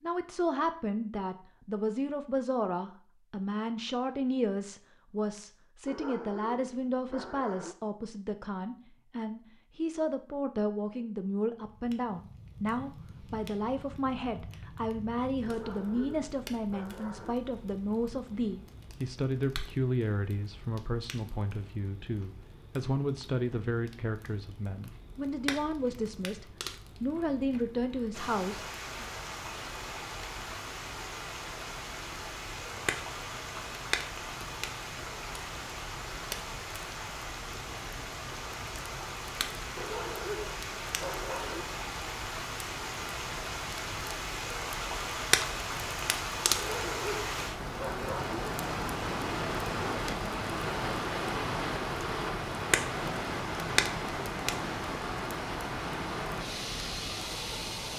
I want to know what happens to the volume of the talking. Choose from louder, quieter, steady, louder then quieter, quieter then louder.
steady.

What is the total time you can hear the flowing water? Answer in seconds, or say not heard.
30 s.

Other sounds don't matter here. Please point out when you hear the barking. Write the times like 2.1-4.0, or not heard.
5.8-7.8, 15.4-17.4, 39.8-41.6, 46.5-48.4.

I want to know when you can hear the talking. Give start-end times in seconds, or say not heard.
0.0-29.1.